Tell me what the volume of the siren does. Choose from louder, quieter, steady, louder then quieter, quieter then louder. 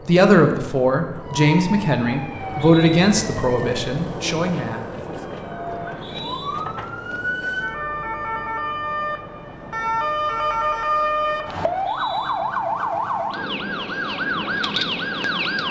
louder.